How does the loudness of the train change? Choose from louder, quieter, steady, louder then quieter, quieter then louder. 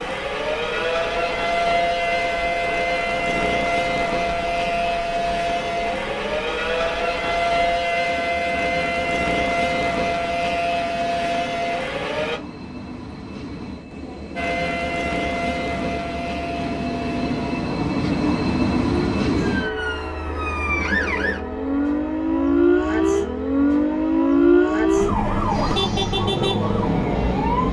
louder then quieter.